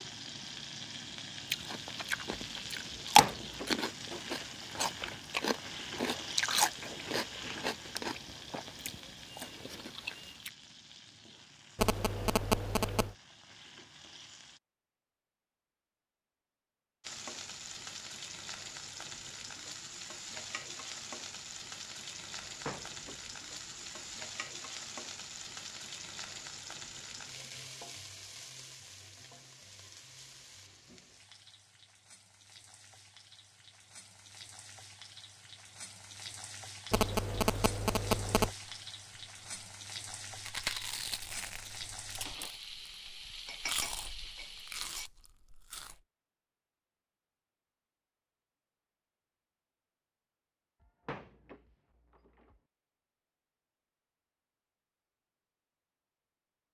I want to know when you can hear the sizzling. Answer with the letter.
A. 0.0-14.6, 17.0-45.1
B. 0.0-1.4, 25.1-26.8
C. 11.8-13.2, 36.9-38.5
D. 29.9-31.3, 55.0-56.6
A.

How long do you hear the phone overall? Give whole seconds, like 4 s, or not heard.
3 s.